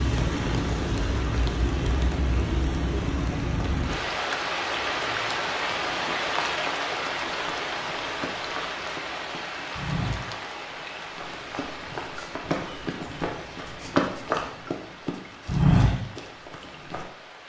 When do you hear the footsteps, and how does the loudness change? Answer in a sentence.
The footsteps can be heard from 7.3 to 17.1 s, getting louder.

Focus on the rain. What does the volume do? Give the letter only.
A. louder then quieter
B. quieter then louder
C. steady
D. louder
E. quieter
E.